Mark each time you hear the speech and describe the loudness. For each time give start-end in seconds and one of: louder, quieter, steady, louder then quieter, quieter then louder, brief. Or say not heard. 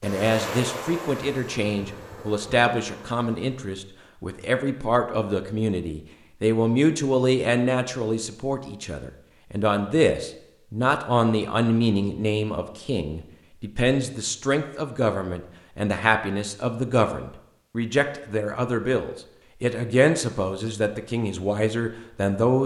0.0-22.6 steady.